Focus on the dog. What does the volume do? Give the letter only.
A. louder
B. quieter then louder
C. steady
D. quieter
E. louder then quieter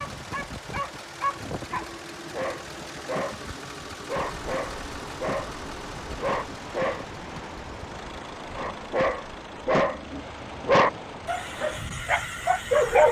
A.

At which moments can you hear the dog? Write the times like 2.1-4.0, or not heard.
0.0-7.0, 8.5-13.0.